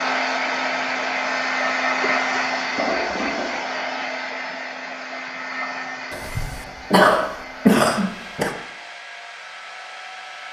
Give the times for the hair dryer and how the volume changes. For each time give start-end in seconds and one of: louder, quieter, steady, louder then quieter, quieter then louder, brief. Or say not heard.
0.0-10.4 quieter.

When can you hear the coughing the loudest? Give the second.
8 s.